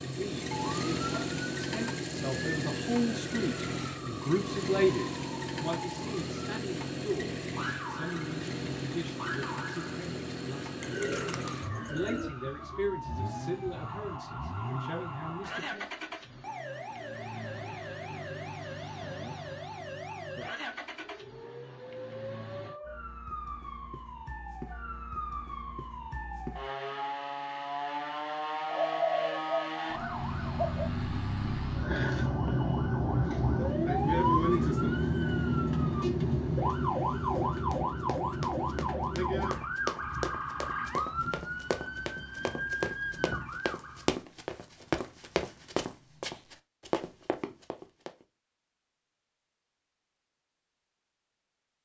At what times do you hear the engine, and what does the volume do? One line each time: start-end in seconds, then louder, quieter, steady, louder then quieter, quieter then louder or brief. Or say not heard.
0.0-22.8 quieter.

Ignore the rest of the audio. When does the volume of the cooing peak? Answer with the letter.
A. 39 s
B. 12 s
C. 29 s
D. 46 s
C.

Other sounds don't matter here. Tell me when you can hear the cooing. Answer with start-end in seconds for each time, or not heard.
10.8-12.3, 28.6-30.9.